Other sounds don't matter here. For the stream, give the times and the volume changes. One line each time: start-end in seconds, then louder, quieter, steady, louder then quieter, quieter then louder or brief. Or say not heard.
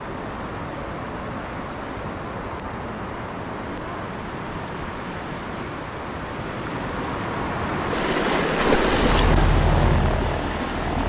0.0-11.0 louder.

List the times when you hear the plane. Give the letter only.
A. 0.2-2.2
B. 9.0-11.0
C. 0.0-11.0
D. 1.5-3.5
B.